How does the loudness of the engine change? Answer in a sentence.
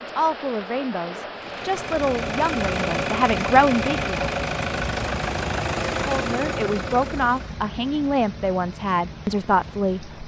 The loudness of the engine stays about the same.